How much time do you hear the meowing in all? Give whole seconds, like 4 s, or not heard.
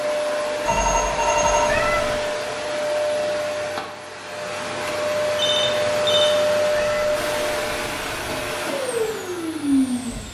2 s.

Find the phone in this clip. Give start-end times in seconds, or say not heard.
0.7-1.9, 5.3-6.3.